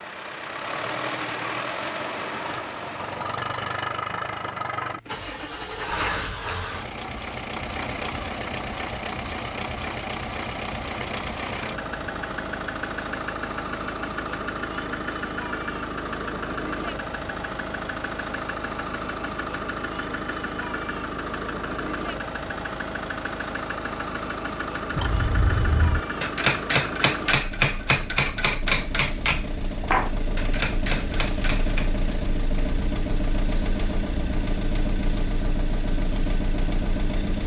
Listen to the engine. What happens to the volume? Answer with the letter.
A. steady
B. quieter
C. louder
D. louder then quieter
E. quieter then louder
A.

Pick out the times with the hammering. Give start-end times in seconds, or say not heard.
24.9-31.9.